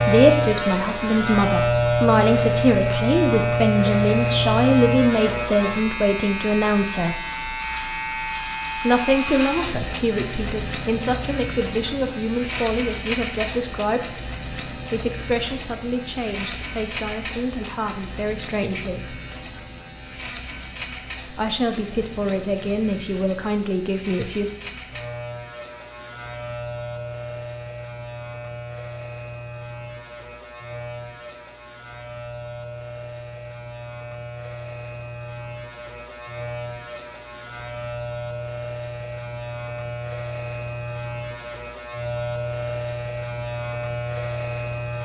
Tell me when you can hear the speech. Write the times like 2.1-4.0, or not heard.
0.0-7.2, 8.8-19.2, 21.2-24.4.